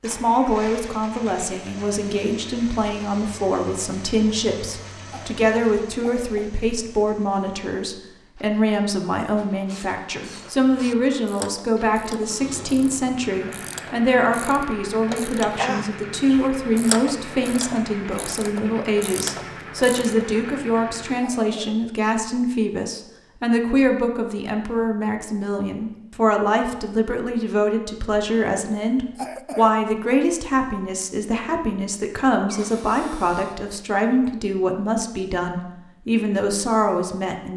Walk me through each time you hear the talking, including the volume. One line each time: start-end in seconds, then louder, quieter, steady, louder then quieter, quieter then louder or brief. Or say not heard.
0.0-37.5 steady.